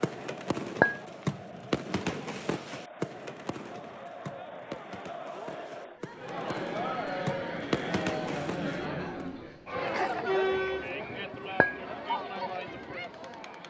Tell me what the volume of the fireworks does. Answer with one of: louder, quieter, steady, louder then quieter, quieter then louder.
quieter then louder.